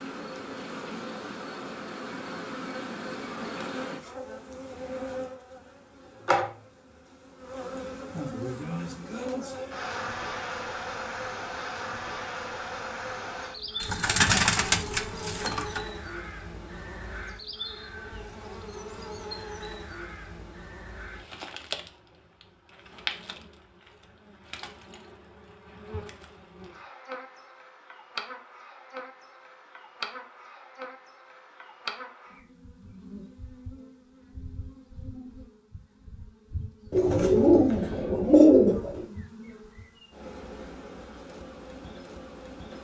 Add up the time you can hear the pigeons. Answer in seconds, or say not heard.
4 s.